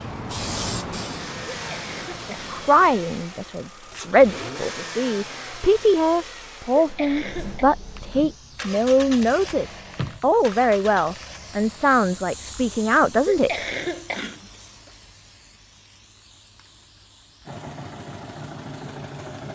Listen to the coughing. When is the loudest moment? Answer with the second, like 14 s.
14 s.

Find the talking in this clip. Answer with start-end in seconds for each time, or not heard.
2.2-13.6.